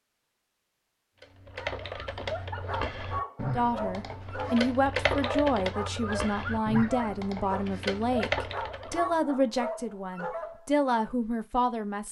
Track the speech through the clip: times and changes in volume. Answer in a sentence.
The speech can be heard from 3.5 to 12.0 s, at a steady volume.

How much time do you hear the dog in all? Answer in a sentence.
You can hear the dog for 9 seconds altogether.